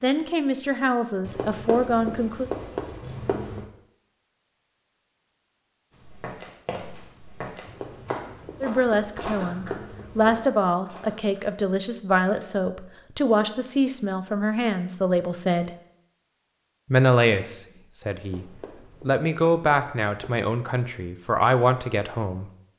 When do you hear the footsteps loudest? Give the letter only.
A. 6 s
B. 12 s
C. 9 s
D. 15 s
C.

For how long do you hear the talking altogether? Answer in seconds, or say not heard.
15 s.